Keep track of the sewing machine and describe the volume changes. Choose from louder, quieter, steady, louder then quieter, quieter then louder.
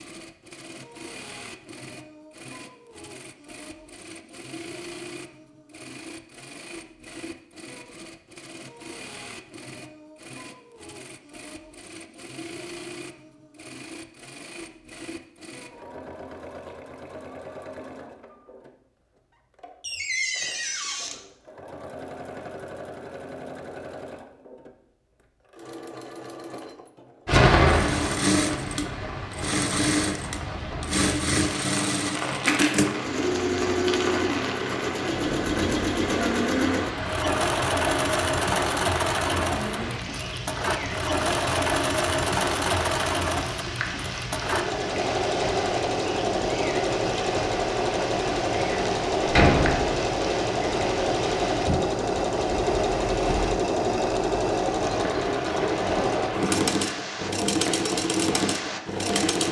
louder.